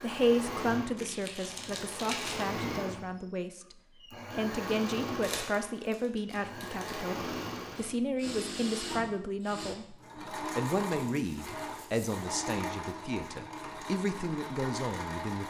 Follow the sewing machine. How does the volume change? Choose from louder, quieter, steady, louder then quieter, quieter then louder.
steady.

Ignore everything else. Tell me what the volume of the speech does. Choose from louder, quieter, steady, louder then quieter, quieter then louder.
steady.